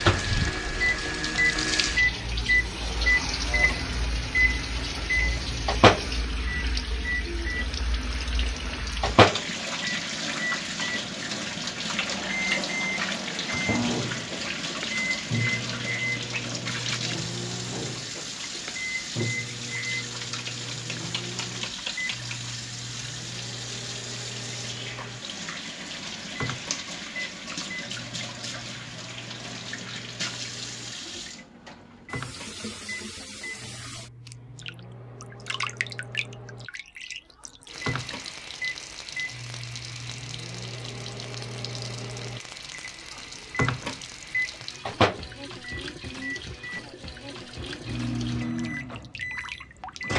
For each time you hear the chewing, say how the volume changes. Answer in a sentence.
The chewing can't be heard in this clip.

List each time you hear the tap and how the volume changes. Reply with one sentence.
You can hear the tap from 0.0 to 50.1 s, getting quieter.